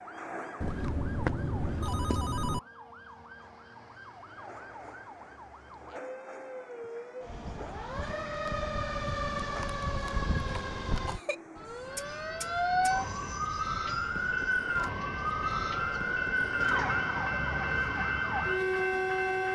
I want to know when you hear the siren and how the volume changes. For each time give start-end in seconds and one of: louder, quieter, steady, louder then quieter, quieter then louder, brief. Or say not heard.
0.0-19.4 louder.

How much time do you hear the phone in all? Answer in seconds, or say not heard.
2 s.